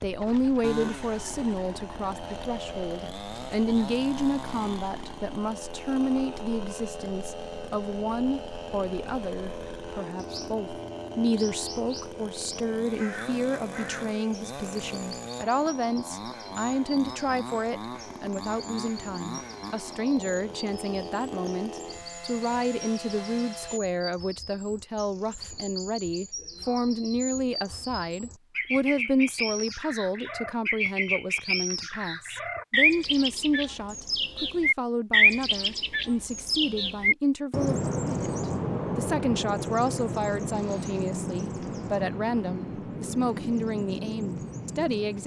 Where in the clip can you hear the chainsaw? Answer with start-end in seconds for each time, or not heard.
0.0-23.8.